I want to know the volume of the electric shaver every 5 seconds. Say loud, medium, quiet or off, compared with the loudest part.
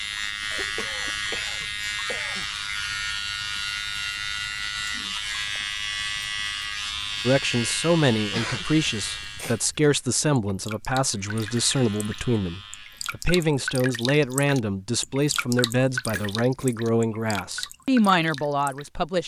loud, loud, quiet, off.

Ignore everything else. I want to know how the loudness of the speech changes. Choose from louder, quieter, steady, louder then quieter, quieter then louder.
steady.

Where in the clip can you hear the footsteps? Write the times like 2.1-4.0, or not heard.
not heard.